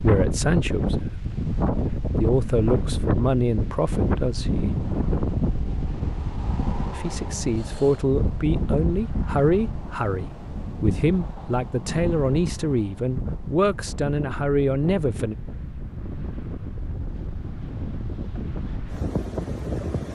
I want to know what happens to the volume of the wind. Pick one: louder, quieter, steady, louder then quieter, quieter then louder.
quieter.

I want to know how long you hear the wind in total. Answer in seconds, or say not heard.
20 s.